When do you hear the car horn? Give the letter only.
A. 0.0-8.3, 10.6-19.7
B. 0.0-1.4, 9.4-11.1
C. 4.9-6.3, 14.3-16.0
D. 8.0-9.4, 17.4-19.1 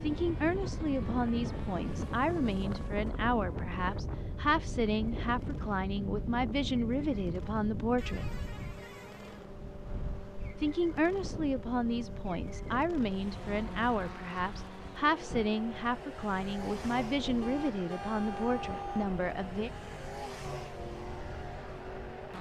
D.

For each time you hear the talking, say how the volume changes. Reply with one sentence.
The talking can be heard from 0.0 to 8.3 s, at a steady volume; and from 10.6 to 19.7 s, at a steady volume.